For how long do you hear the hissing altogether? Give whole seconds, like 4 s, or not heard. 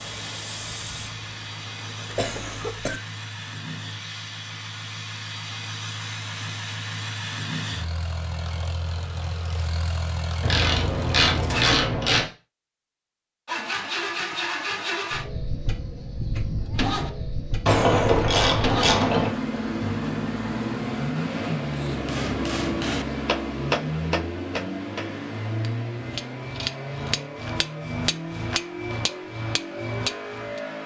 3 s.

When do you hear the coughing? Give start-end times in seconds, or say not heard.
2.1-3.0, 17.6-18.3.